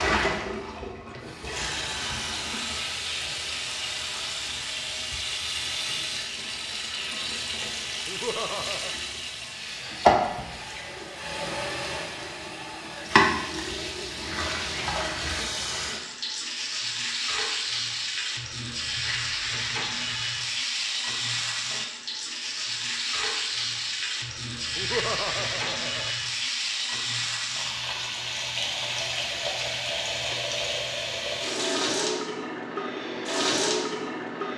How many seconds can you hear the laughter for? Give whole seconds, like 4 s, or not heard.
2 s.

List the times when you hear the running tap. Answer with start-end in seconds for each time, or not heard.
0.0-34.5.